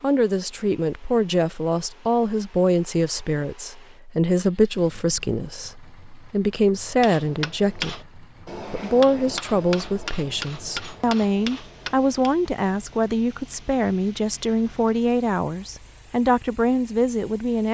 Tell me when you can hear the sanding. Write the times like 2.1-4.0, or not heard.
not heard.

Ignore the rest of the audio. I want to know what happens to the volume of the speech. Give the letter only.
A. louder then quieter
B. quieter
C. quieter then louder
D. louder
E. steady
E.